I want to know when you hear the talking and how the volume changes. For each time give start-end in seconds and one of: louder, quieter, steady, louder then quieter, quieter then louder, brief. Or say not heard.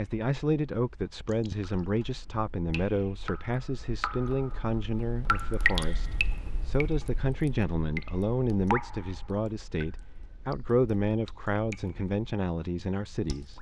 0.0-13.5 steady.